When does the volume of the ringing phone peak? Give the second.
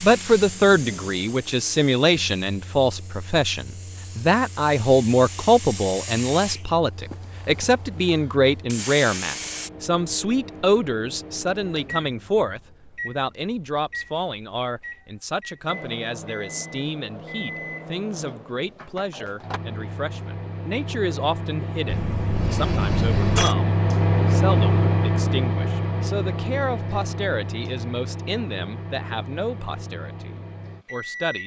23 s.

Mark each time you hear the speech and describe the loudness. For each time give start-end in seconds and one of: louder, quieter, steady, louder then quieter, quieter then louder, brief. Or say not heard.
0.0-31.4 quieter.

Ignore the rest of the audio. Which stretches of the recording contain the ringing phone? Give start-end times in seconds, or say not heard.
21.9-23.6.